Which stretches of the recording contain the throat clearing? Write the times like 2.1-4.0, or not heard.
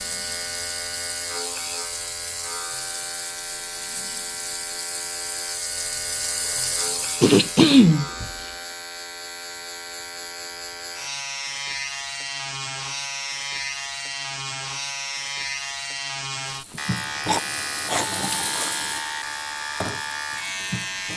7.2-8.1, 17.1-18.8.